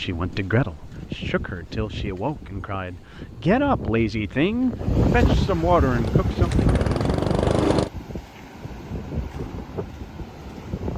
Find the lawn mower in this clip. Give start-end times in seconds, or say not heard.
6.0-7.9.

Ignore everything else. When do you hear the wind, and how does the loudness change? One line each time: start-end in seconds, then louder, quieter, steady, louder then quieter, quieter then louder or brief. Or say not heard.
0.0-10.9 louder then quieter.